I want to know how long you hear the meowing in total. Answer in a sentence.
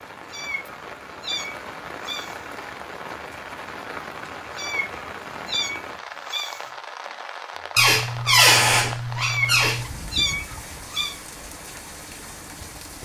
You can hear the meowing for 6 seconds altogether.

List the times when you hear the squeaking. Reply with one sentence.
The squeaking can be heard from 7.8 to 9.9 s.